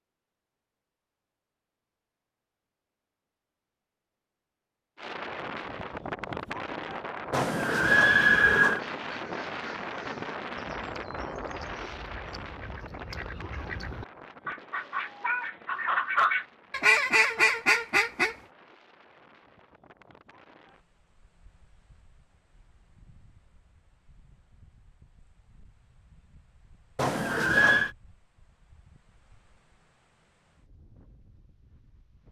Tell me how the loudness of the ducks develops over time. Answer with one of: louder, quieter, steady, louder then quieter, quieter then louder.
louder.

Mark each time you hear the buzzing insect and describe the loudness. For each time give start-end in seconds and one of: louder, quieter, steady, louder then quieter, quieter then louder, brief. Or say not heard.
not heard.